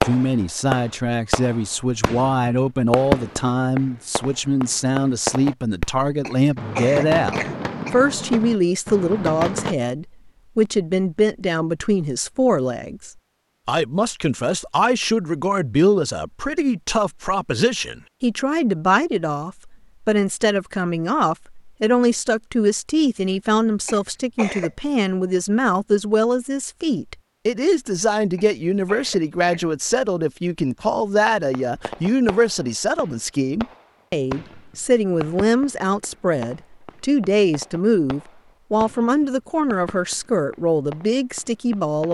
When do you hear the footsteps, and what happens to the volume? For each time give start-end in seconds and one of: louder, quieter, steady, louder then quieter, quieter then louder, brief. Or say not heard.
not heard.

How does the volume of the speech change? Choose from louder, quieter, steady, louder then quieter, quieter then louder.
steady.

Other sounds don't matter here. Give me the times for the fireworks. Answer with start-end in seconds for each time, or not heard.
0.0-9.8, 31.5-42.0.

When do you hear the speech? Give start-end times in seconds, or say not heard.
0.0-42.0.